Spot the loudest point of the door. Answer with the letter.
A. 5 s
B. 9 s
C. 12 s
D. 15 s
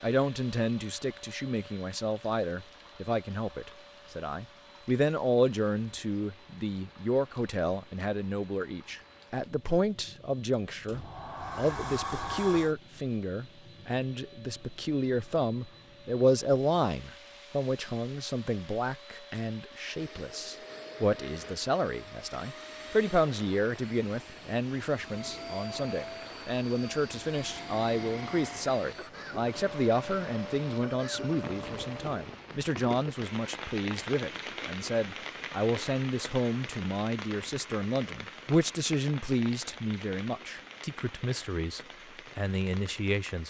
C.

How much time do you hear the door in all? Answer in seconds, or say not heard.
2 s.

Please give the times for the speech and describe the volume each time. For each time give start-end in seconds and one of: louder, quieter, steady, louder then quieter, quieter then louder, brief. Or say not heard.
0.0-43.4 steady.